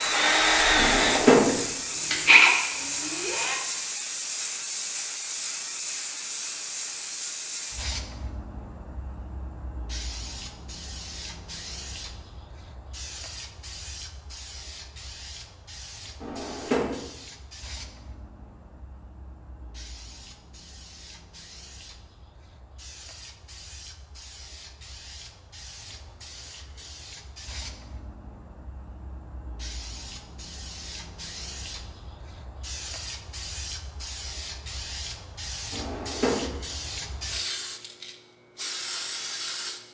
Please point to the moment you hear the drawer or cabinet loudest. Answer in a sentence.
The loudest moment of the drawer or cabinet is at 1 second.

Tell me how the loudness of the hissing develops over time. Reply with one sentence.
The loudness of the hissing goes down, then up.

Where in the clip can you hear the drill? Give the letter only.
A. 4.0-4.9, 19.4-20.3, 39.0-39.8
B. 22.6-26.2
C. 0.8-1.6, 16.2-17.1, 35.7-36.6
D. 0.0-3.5
D.